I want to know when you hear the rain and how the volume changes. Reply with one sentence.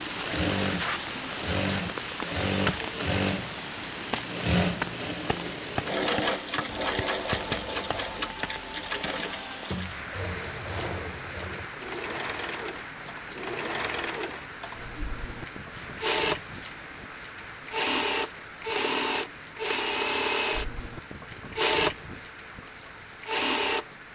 The rain can be heard from 0.0 to 24.1 s, getting quieter.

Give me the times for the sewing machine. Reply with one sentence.
The sewing machine can be heard from 0.0 to 24.1 s.